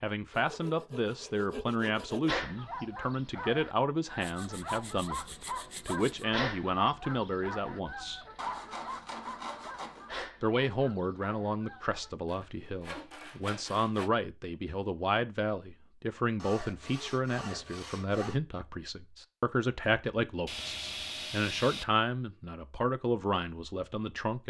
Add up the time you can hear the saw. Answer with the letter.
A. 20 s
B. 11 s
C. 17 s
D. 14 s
B.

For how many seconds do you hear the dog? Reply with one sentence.
You can hear the dog for 10 seconds altogether.